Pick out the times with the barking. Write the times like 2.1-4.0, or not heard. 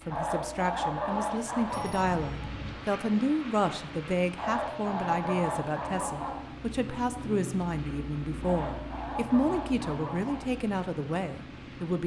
0.1-2.0, 4.3-6.3, 8.4-10.4.